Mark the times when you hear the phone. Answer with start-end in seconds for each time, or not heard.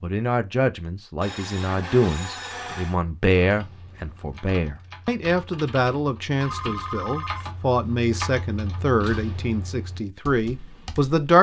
1.2-3.0, 6.3-7.5.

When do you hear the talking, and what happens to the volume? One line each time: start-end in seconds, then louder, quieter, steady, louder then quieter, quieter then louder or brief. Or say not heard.
0.0-11.3 steady.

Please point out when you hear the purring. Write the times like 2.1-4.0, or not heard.
not heard.